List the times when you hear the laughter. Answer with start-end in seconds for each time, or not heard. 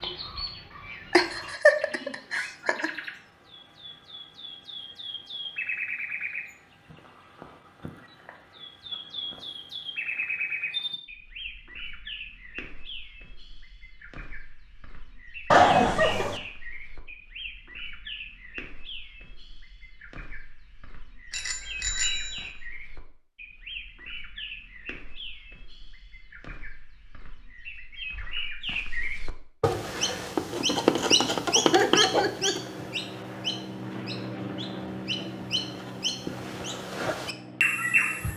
1.1-2.9, 15.5-16.4, 31.7-32.5.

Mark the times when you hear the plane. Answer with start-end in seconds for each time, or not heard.
29.8-38.3.